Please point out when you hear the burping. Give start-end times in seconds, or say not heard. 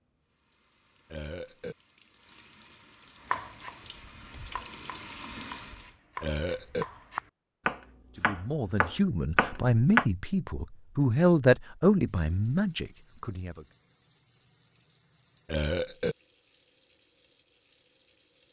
1.1-1.8, 6.2-6.8, 15.4-16.1.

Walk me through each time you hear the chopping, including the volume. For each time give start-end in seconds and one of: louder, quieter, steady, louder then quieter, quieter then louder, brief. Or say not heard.
3.2-10.1 quieter then louder.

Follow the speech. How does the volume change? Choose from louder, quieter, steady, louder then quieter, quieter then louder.
louder then quieter.